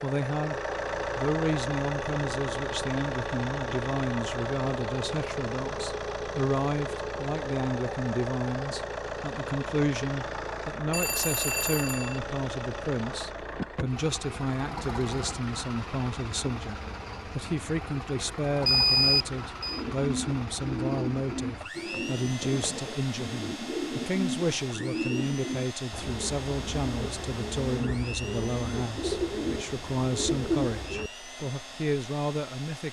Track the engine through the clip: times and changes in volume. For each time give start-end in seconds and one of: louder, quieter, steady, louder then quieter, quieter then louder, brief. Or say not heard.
0.0-32.8 quieter.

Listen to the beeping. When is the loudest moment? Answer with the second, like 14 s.
19 s.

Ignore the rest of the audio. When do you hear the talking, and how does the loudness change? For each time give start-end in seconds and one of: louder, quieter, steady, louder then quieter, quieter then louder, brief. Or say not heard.
0.0-32.8 steady.